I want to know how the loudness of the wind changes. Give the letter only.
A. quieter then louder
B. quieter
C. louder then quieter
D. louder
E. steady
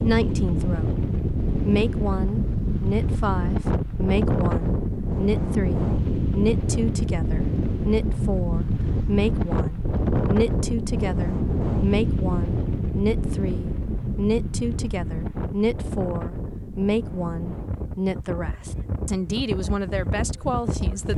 B.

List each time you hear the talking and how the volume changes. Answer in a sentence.
The talking can be heard briefly from 0.0 to 1.0 s; and from 1.6 to 21.1 s, at a steady volume.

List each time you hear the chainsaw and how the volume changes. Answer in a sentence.
You can't hear the chainsaw here.